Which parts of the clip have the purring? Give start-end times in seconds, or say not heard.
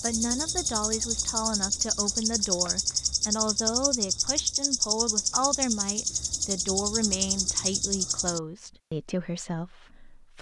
not heard.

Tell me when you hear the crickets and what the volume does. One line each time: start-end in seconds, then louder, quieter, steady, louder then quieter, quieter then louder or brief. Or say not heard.
0.0-8.4 steady.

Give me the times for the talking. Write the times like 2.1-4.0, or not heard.
0.0-10.3.